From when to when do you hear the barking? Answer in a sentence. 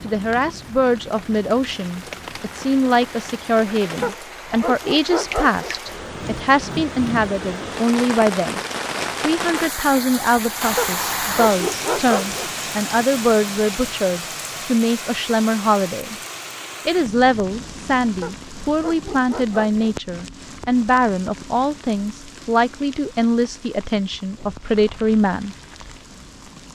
You can hear the barking from 4.0 to 5.8 s, from 10.8 to 12.6 s and from 18.2 to 19.9 s.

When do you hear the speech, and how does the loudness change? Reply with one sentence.
You can hear the speech from 0.0 to 8.6 s, at a steady volume; from 9.2 to 16.1 s, at a steady volume; and from 16.9 to 25.6 s, at a steady volume.